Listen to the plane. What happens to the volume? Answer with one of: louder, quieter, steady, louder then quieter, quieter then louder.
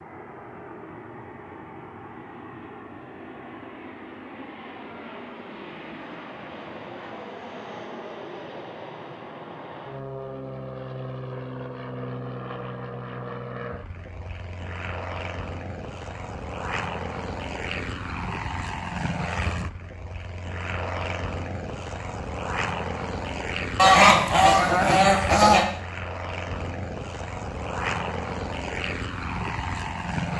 louder.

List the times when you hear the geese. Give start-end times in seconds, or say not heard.
23.8-25.6.